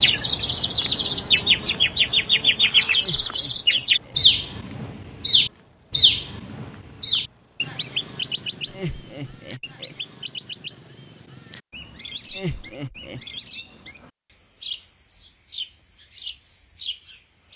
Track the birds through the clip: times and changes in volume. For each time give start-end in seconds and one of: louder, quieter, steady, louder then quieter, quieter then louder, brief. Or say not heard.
0.0-17.5 quieter.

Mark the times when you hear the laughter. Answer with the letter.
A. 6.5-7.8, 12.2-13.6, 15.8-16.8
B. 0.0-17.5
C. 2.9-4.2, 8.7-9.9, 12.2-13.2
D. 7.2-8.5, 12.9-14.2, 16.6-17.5
C.